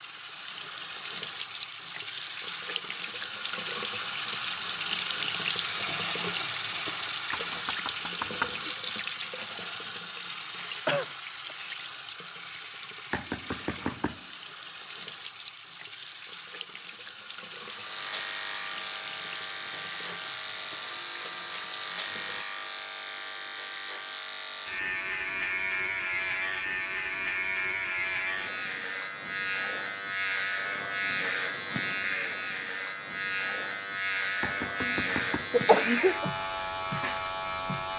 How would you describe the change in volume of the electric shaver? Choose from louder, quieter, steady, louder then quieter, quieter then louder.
steady.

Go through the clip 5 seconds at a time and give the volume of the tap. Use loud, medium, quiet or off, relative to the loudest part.
loud, loud, medium, medium, medium, off, off, off.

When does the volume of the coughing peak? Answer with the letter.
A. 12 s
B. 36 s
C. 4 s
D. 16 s
B.